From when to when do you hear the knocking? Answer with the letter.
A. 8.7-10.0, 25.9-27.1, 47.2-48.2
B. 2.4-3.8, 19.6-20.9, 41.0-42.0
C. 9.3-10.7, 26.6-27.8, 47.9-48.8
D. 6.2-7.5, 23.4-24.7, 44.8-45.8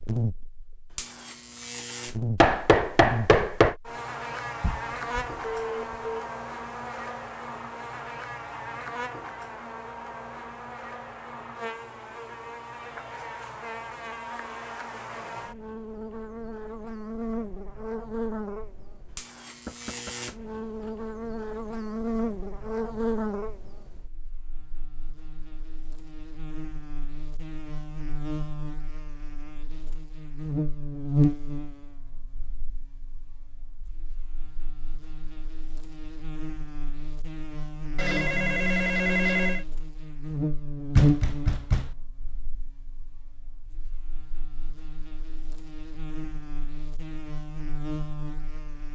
B.